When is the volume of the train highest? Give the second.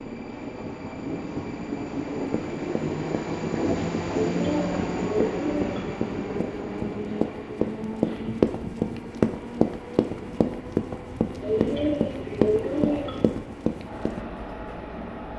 4 s.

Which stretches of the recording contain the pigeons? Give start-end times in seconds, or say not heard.
4.2-5.8, 11.4-13.2.